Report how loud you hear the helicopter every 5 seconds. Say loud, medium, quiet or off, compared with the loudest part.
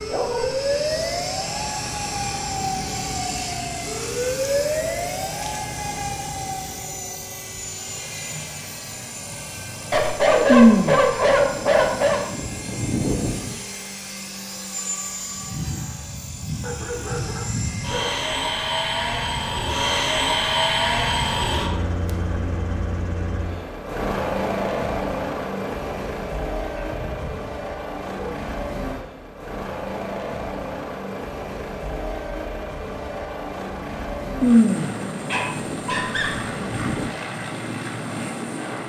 medium, medium, medium, loud, loud, medium, medium, medium.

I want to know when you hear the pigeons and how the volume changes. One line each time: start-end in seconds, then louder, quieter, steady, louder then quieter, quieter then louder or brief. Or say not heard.
not heard.